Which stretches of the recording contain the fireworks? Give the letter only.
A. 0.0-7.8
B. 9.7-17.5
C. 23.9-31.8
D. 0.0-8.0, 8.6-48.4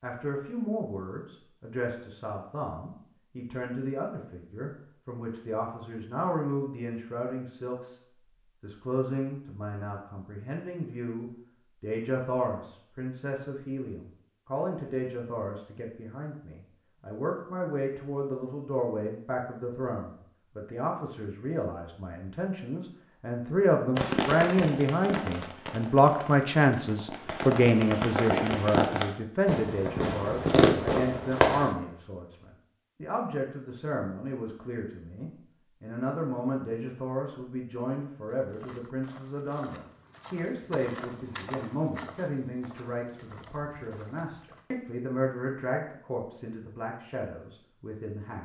C.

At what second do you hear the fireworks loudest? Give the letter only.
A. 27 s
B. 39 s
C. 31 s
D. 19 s
C.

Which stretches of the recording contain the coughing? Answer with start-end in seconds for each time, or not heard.
not heard.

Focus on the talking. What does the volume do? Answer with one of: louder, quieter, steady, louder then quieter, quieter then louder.
louder then quieter.